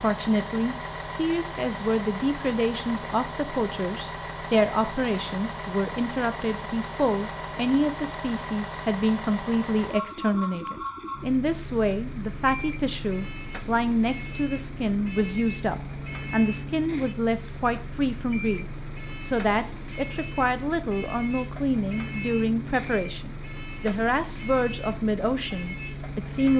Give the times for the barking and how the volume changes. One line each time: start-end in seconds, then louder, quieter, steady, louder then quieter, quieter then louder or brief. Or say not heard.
not heard.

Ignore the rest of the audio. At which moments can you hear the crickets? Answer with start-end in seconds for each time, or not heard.
not heard.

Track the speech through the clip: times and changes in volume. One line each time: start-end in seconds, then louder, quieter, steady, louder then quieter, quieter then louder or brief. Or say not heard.
0.0-26.5 steady.